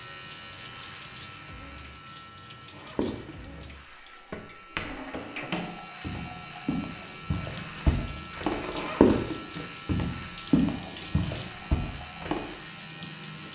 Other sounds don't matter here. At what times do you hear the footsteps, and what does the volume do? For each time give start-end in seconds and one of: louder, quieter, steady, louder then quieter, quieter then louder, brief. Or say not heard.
2.7-12.4 louder.